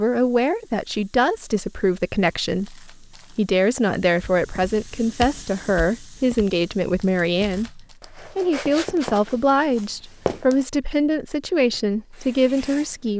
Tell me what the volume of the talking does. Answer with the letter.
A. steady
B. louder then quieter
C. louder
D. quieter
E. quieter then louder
A.